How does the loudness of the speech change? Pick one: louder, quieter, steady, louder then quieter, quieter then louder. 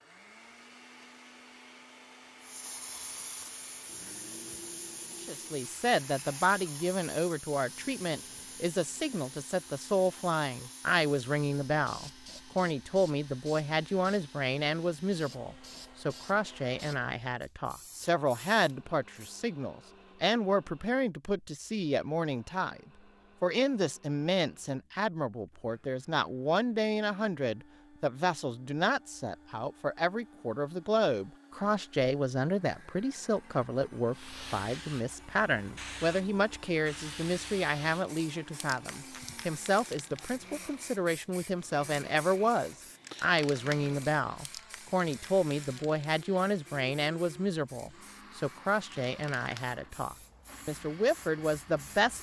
steady.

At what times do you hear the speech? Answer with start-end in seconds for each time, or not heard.
5.2-22.8, 23.4-52.1.